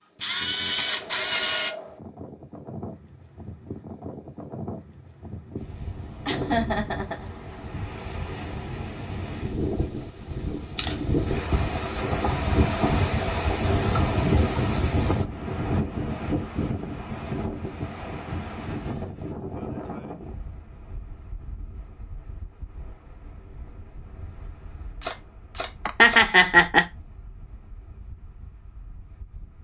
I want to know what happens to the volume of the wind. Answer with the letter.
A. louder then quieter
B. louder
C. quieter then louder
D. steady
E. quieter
A.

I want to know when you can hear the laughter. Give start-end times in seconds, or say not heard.
6.2-7.3, 25.9-26.9.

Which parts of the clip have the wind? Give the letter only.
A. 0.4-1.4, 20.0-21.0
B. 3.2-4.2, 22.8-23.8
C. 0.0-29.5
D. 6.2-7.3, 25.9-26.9
C.